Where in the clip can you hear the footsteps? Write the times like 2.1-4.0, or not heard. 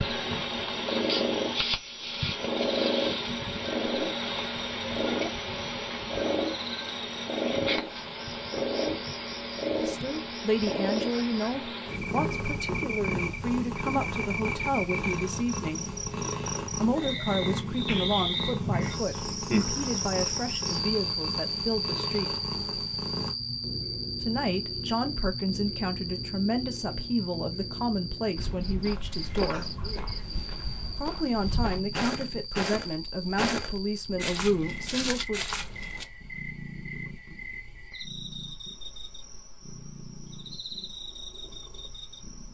28.4-36.0.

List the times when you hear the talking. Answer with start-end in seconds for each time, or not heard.
9.8-15.9, 16.8-22.4, 24.2-29.8, 30.9-35.5.